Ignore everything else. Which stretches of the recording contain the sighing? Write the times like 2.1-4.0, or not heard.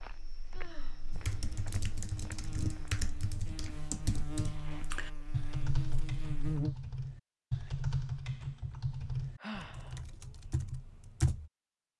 0.5-1.1, 4.5-5.3, 9.4-10.0.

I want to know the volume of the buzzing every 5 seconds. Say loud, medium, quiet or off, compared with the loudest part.
medium, loud, off.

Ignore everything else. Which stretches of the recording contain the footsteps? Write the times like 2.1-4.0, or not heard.
0.0-2.9.